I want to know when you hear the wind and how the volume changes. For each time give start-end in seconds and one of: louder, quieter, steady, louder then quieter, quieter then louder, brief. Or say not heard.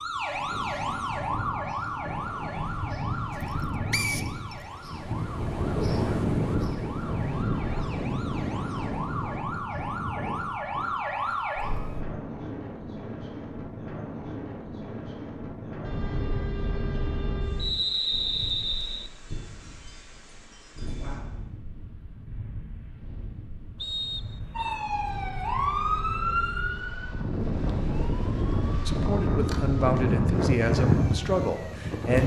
0.0-32.2 quieter then louder.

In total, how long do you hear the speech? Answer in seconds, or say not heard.
3 s.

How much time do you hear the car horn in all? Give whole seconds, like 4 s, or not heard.
4 s.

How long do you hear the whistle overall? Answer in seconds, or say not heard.
3 s.